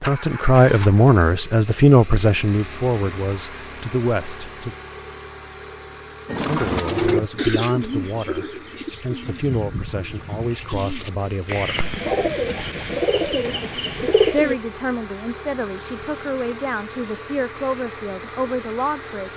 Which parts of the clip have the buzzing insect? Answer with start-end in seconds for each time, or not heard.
not heard.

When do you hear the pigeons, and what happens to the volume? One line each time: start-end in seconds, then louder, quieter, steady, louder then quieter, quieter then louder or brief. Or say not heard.
6.2-14.6 quieter then louder.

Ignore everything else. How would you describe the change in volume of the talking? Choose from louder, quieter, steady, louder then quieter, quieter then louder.
quieter.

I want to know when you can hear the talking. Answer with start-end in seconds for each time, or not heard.
0.0-4.8, 6.3-11.9, 14.2-19.3.